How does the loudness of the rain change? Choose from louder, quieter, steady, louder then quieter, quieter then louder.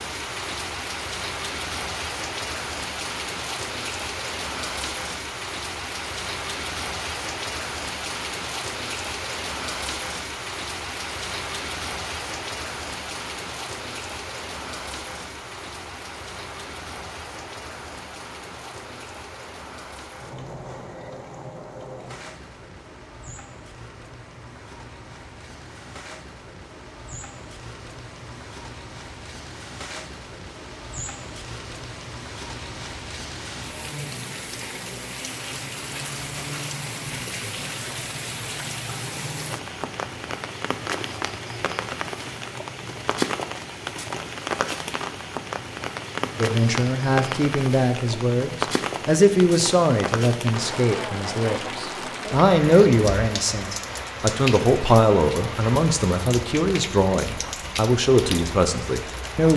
quieter then louder.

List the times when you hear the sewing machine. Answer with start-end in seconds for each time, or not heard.
not heard.